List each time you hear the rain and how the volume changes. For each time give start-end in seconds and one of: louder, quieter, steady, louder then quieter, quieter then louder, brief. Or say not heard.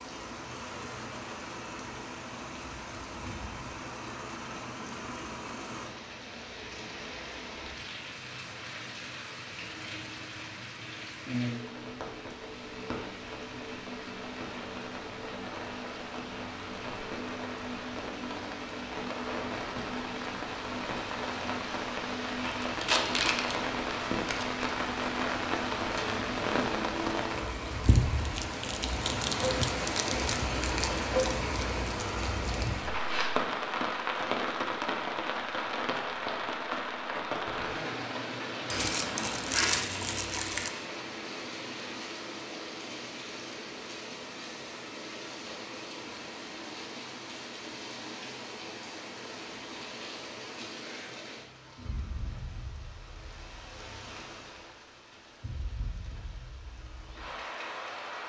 0.0-58.2 louder then quieter.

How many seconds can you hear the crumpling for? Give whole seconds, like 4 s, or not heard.
4 s.